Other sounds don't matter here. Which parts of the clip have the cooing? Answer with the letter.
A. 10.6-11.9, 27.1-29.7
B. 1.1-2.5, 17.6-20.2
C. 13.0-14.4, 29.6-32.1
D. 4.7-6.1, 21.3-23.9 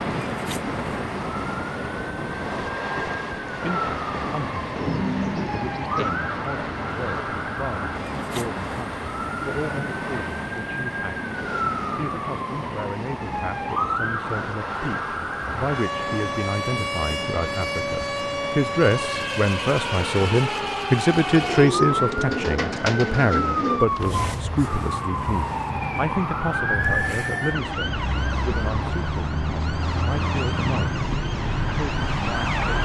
D.